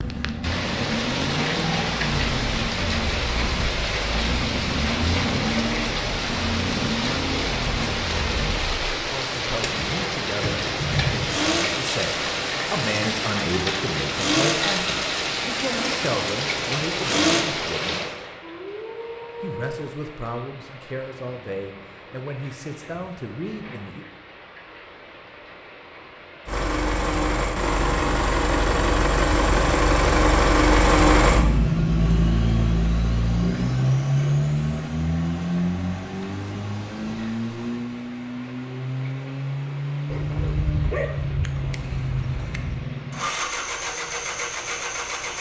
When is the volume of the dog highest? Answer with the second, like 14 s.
41 s.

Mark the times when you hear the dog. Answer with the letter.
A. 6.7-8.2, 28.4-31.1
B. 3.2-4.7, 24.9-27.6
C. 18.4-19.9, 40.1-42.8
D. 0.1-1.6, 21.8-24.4
C.